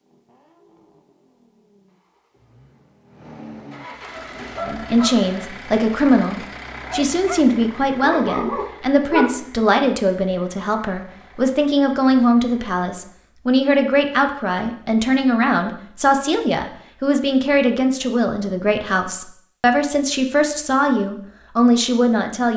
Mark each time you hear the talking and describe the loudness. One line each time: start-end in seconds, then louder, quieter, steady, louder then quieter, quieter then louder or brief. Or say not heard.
4.6-22.5 steady.